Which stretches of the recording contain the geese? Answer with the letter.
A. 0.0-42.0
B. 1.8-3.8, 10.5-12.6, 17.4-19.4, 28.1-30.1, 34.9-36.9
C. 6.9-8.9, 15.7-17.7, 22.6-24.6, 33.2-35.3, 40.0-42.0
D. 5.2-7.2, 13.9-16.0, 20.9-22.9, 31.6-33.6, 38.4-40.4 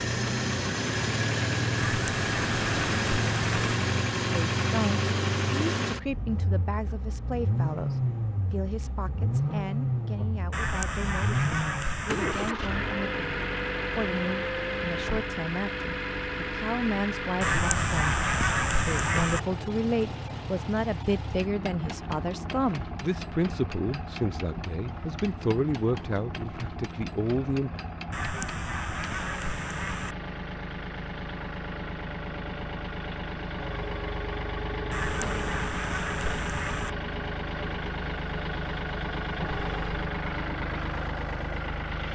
B.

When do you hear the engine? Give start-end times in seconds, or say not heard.
0.0-42.0.